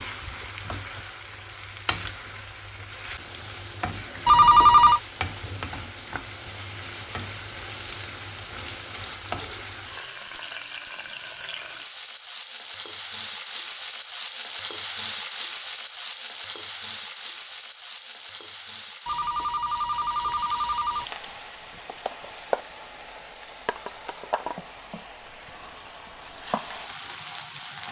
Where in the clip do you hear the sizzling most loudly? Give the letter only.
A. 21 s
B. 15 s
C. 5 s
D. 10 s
B.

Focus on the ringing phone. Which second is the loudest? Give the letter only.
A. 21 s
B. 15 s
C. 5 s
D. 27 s
C.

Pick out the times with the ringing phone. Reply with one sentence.
You can hear the ringing phone from 4.2 to 5.0 s and from 19.1 to 21.1 s.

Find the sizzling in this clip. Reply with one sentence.
You can hear the sizzling from 0.0 to 27.8 s.